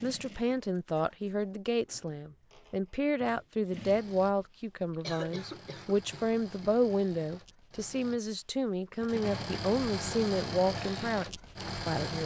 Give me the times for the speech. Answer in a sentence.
You can hear the speech from 0.0 to 12.2 s.